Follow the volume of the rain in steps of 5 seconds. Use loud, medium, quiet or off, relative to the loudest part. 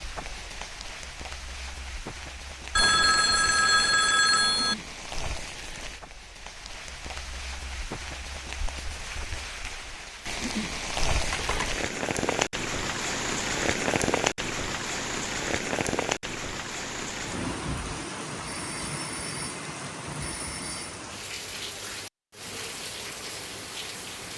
medium, medium, loud, loud, medium.